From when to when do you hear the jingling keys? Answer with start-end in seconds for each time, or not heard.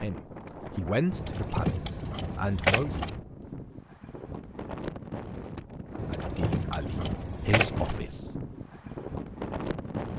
1.1-3.1, 6.0-8.0.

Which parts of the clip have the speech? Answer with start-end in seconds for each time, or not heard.
0.0-3.0, 6.2-8.2.